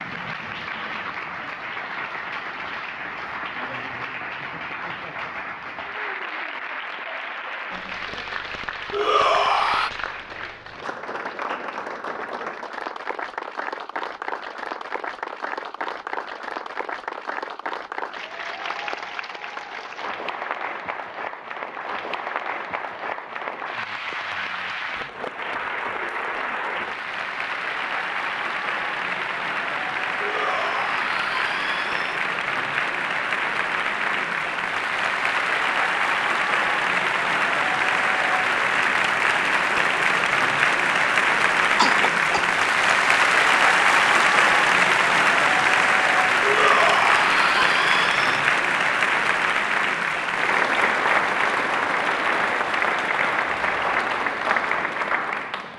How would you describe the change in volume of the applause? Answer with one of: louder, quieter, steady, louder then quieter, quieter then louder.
louder.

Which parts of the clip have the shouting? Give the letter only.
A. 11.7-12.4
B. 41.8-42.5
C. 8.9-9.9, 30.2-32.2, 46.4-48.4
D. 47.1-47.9
C.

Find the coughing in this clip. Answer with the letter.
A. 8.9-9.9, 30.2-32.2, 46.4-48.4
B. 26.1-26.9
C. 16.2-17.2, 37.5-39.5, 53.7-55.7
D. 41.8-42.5
D.